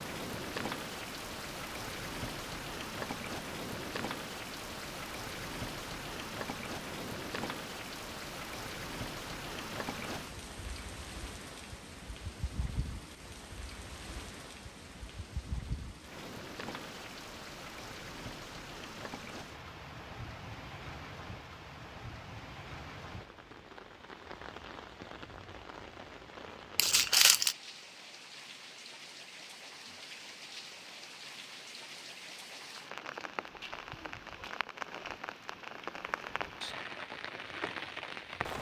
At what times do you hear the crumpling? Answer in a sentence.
You can hear the crumpling from 26.8 to 27.6 s.